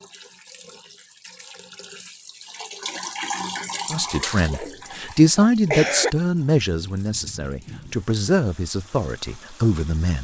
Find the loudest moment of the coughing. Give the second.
6 s.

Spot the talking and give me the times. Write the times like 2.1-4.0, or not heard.
3.9-10.1.